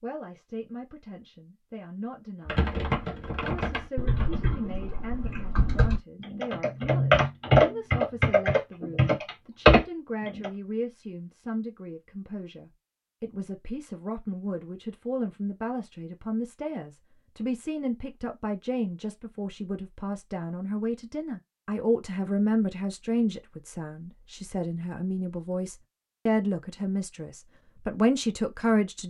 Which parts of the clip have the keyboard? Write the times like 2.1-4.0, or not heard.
2.5-10.5.